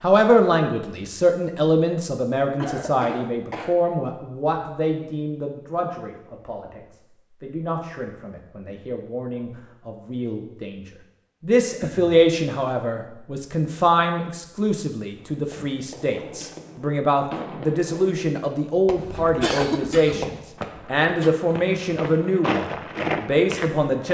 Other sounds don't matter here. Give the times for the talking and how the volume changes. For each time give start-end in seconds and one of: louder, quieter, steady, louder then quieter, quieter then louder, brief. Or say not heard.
0.0-24.0 quieter then louder.